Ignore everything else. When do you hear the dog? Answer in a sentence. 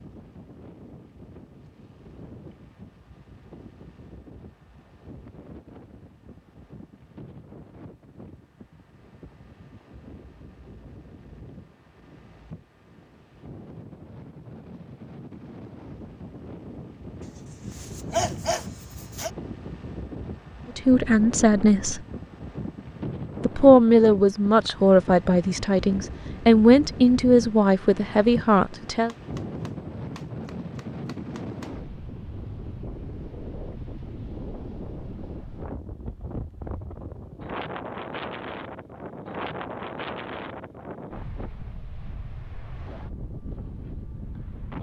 The dog can be heard from 17.2 to 19.3 s.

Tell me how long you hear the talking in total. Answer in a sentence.
You can hear the talking for 7 seconds altogether.